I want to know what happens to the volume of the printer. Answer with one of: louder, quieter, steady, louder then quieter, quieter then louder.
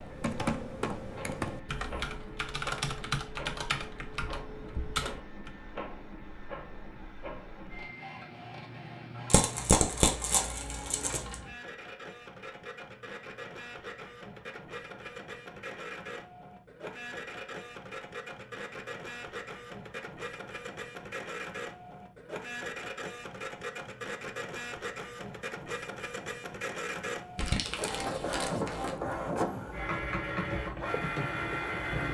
louder.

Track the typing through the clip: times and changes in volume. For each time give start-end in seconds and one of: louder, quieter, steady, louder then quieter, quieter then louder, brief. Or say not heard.
0.0-5.5 steady.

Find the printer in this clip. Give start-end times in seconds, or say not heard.
0.0-32.1.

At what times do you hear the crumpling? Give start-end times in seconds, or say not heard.
9.3-11.3, 27.4-28.9.